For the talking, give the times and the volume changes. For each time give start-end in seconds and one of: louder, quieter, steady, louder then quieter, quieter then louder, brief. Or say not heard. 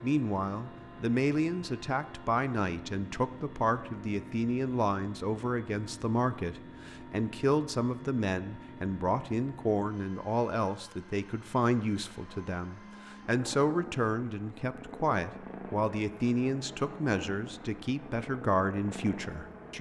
0.0-19.7 steady.